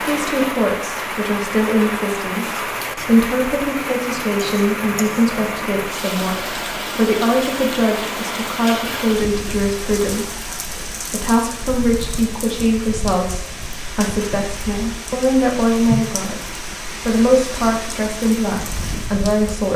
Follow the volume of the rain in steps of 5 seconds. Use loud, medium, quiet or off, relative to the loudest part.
loud, loud, medium, loud.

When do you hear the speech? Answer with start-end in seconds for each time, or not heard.
0.0-19.7.